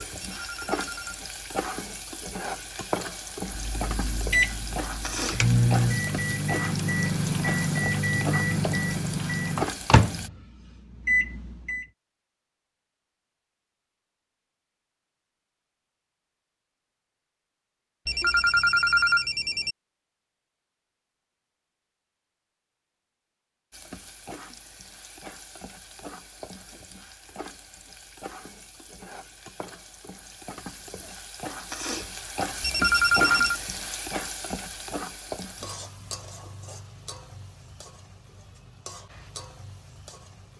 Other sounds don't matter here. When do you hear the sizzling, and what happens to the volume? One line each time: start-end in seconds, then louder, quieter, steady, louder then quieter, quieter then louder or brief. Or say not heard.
0.0-10.3 steady
23.7-40.5 louder then quieter.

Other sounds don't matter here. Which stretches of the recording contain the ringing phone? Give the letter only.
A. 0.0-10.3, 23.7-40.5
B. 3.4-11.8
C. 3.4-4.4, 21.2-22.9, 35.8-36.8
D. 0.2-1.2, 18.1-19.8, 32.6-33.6
D.